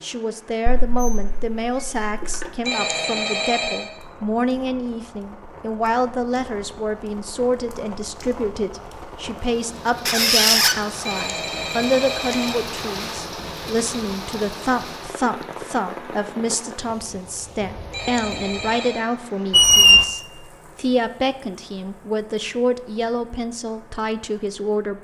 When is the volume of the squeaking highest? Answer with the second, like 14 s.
20 s.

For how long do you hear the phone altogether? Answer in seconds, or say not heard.
4 s.